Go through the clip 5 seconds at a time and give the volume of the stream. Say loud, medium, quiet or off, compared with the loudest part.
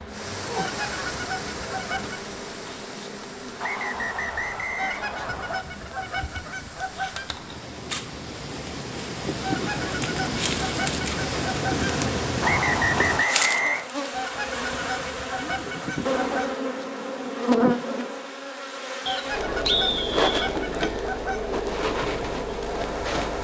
medium, medium, loud, off, off.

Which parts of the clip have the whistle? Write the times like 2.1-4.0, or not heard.
3.6-5.6, 12.4-13.9, 19.1-20.5.